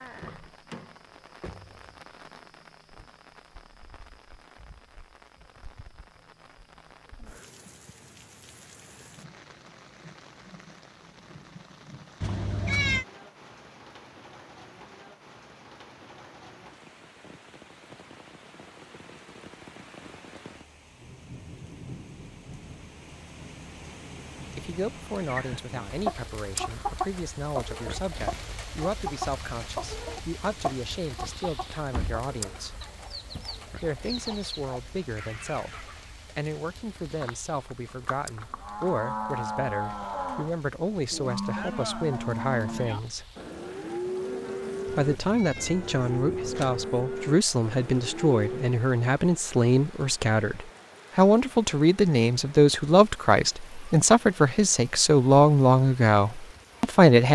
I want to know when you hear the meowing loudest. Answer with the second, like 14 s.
13 s.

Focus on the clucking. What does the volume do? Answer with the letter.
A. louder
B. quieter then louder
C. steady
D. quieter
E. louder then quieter
D.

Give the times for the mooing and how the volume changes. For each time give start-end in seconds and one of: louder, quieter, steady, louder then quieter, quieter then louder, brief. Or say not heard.
37.2-48.8 steady.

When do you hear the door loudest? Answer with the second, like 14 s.
32 s.